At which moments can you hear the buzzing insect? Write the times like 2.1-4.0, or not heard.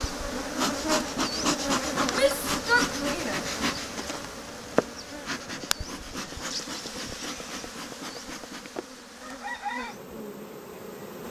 0.0-11.2.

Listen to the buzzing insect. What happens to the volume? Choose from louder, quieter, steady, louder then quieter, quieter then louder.
quieter.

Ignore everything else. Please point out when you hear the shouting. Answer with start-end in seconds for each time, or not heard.
2.1-3.4.